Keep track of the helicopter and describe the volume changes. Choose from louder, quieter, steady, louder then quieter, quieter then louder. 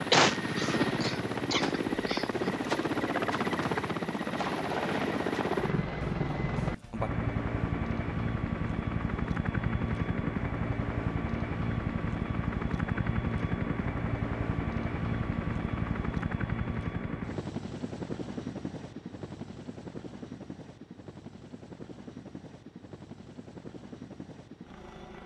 quieter.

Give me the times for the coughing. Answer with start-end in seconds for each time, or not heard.
0.1-2.5.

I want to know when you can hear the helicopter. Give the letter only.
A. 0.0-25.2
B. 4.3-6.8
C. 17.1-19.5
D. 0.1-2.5
A.